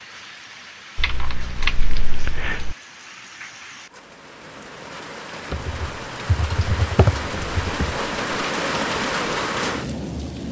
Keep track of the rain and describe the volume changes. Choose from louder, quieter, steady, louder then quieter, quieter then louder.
louder.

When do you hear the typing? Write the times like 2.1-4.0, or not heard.
0.9-2.8, 5.5-8.0.